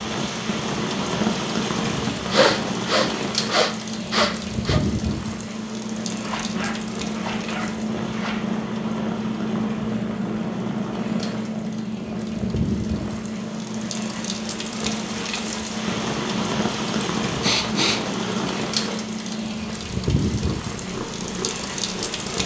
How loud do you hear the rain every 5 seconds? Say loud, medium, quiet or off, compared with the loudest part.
loud, medium, medium, loud, loud.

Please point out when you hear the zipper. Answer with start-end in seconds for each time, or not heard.
6.2-8.6.